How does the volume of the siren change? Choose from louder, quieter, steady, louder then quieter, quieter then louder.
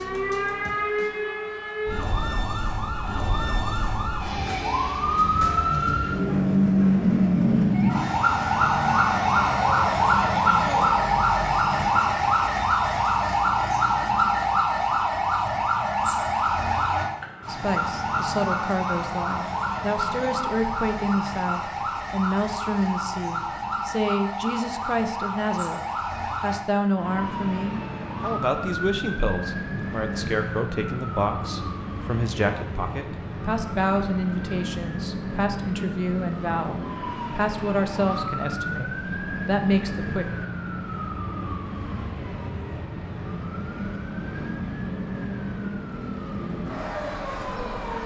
quieter.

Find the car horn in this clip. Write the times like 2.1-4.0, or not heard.
not heard.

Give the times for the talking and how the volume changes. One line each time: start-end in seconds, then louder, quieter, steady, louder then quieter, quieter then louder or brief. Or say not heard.
17.4-40.2 steady.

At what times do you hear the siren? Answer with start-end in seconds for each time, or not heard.
0.0-48.0.